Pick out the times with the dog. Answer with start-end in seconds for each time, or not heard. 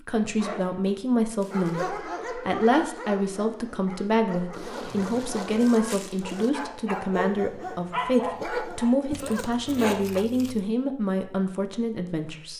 1.4-10.2.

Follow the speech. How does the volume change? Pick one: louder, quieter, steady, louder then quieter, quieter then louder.
steady.